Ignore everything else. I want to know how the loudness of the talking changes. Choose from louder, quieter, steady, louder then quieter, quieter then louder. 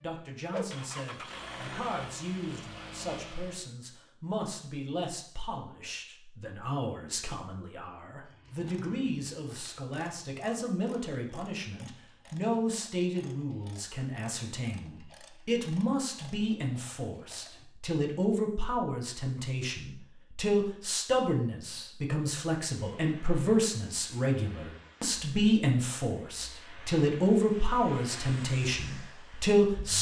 louder.